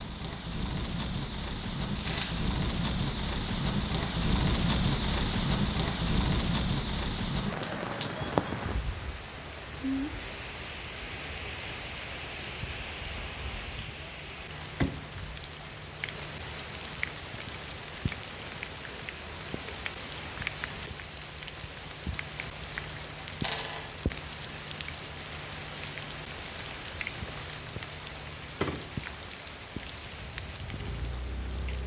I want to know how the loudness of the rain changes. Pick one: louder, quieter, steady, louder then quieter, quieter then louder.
quieter.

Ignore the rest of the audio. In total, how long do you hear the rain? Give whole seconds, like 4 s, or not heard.
32 s.